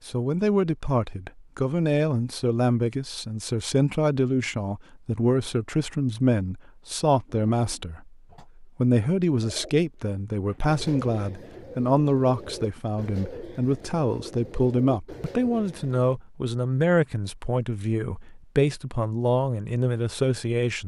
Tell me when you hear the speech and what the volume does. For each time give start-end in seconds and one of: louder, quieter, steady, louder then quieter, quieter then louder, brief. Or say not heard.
0.1-20.8 steady.